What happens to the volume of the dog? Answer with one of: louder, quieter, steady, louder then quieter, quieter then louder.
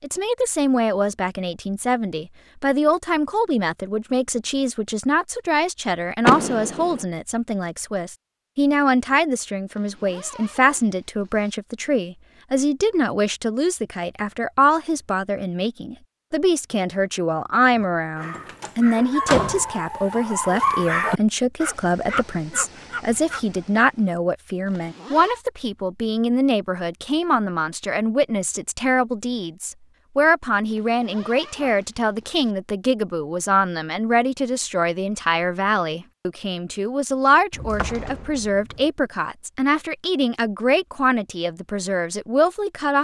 louder then quieter.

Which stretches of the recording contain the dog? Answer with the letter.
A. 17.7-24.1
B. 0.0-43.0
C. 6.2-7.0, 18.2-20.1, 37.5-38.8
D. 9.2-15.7
A.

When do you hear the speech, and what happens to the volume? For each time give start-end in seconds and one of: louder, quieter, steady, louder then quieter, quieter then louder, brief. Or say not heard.
0.0-43.0 steady.